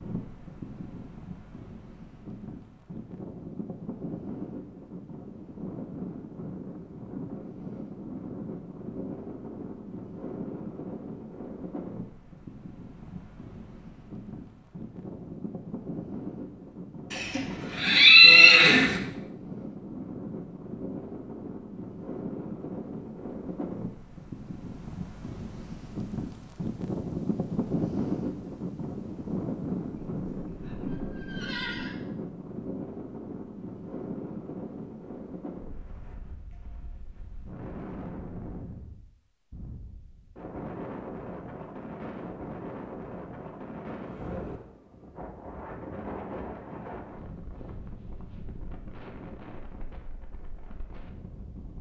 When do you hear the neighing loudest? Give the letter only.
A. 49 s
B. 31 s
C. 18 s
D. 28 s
C.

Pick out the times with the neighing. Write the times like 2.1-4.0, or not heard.
17.1-19.0, 30.1-31.9.